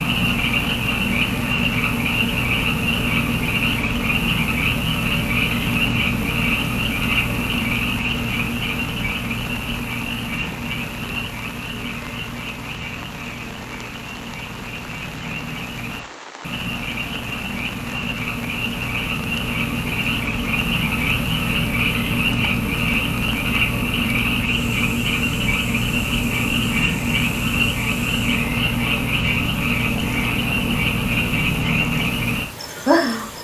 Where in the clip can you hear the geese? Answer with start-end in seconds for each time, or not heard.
not heard.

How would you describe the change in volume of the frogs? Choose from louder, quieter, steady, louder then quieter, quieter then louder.
quieter then louder.